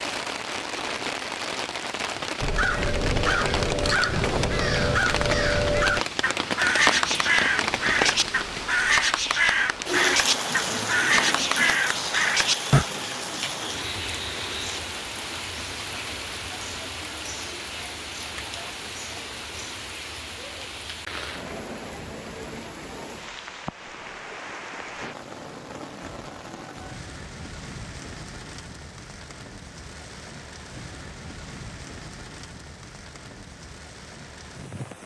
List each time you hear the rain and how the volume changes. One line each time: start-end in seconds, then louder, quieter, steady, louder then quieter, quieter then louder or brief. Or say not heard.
0.0-35.0 quieter.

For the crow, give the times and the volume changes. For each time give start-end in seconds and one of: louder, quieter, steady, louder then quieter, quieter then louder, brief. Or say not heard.
2.4-12.8 steady.